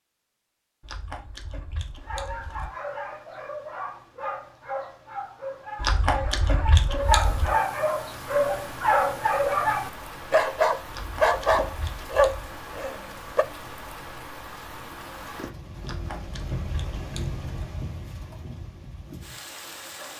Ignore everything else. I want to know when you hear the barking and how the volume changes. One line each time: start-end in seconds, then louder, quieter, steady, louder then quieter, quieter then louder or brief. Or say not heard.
2.0-13.4 louder.